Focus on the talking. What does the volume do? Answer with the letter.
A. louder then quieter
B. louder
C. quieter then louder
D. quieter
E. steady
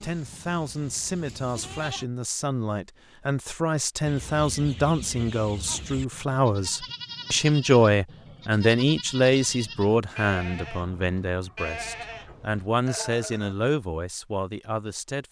A.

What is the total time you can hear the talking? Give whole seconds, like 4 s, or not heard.
15 s.